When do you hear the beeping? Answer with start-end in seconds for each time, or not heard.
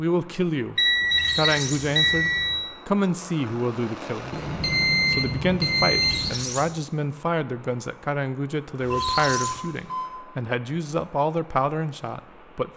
0.8-2.5, 4.3-6.3, 8.8-10.1.